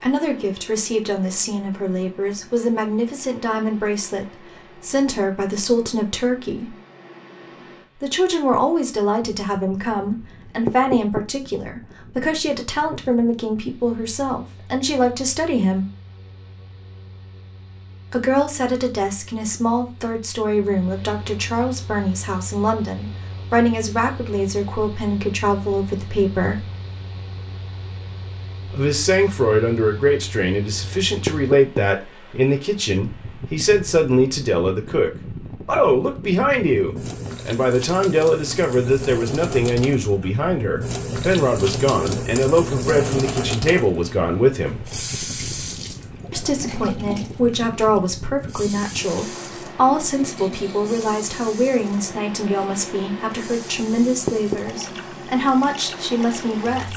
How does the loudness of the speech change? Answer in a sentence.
The loudness of the speech stays about the same.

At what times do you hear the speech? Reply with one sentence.
The speech can be heard from 0.0 to 6.7 s, from 8.0 to 15.8 s, from 18.1 to 26.6 s, from 28.6 to 44.8 s and from 46.3 to 56.9 s.